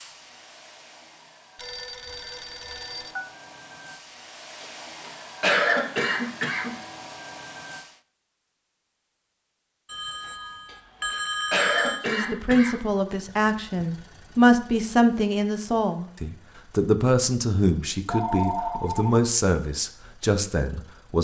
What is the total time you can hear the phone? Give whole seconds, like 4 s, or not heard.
5 s.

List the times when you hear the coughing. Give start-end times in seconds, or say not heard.
4.6-6.7, 10.7-13.2.